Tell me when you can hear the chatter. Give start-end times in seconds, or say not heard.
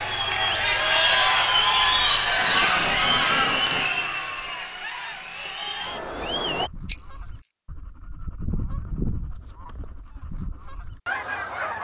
0.0-6.7.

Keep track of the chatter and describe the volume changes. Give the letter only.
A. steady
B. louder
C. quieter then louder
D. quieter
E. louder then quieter
D.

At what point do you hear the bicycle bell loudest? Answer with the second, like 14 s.
7 s.